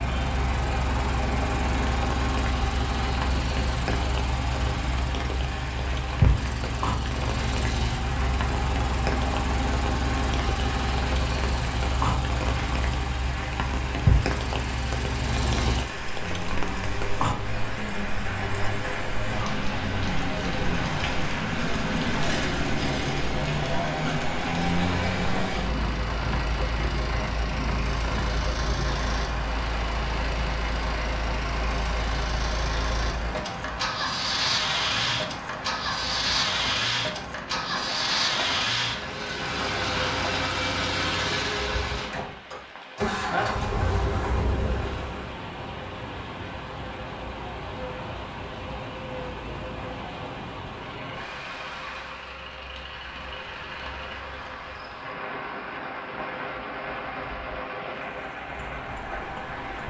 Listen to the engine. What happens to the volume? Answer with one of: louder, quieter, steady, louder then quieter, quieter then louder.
quieter.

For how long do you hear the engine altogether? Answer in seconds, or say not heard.
60 s.